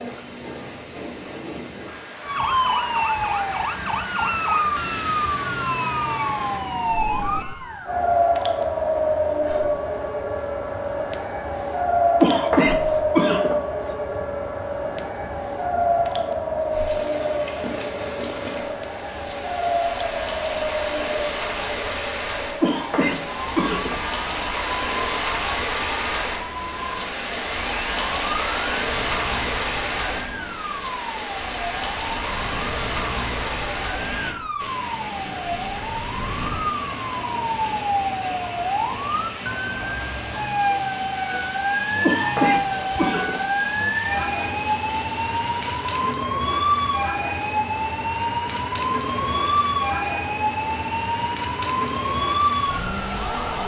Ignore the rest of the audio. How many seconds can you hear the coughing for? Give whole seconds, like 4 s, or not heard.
4 s.